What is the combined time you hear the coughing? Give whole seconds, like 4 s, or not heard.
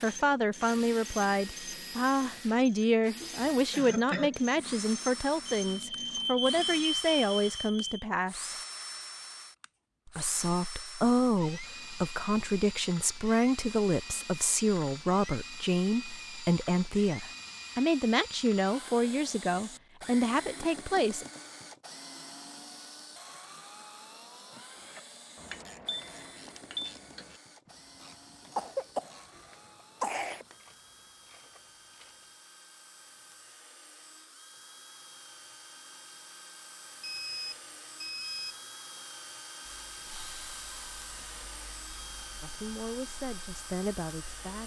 3 s.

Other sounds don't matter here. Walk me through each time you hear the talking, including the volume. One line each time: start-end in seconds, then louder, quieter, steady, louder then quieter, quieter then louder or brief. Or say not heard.
0.0-8.6 steady
10.1-21.2 steady
42.4-44.6 brief.